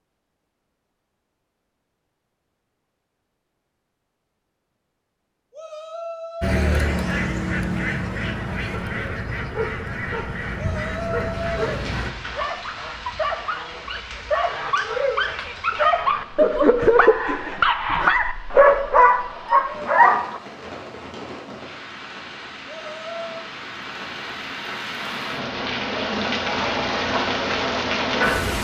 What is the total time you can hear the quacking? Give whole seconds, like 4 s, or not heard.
6 s.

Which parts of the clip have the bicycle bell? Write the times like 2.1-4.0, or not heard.
not heard.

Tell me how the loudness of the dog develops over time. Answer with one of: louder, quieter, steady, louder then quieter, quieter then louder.
louder.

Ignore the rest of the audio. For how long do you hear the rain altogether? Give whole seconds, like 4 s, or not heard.
17 s.